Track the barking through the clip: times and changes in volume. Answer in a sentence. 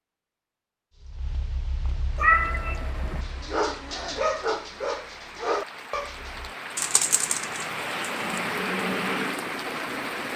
The barking can be heard from 0.9 to 6.5 s, getting louder.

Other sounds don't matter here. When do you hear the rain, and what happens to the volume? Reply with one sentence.
The rain can be heard from 2.0 to 10.3 s, getting louder.